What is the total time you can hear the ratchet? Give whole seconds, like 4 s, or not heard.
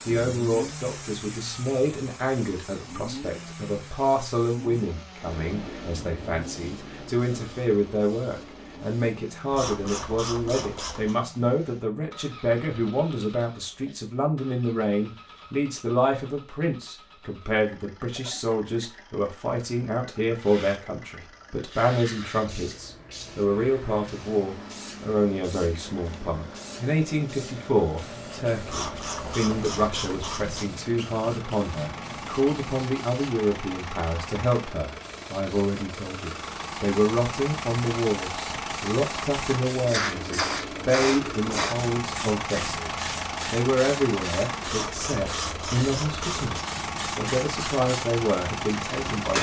6 s.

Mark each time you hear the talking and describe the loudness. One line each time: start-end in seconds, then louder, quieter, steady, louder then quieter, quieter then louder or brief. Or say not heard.
0.1-49.3 steady.